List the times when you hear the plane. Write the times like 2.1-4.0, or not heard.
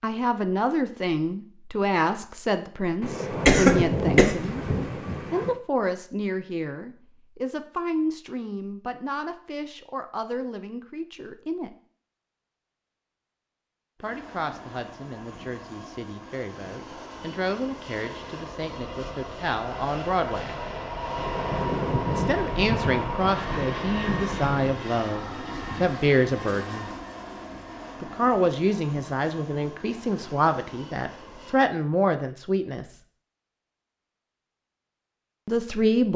13.9-31.6.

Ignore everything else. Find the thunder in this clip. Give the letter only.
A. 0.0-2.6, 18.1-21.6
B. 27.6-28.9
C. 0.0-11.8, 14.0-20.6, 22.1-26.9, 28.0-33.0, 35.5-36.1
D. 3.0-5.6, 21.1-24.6
D.